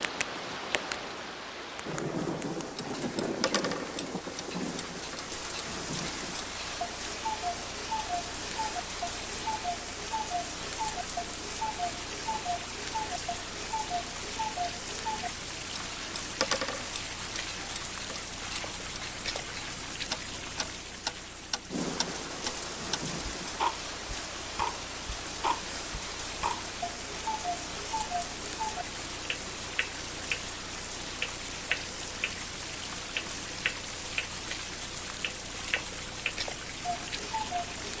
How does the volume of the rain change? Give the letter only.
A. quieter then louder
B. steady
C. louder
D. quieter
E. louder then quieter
B.